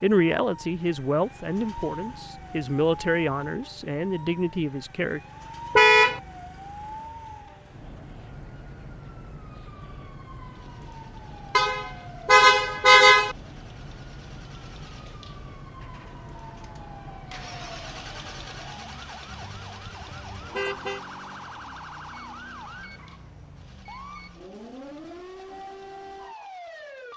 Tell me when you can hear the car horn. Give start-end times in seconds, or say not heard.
5.8-6.2, 11.6-13.3, 19.8-21.0.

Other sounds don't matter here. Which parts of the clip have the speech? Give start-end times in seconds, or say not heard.
0.0-5.2.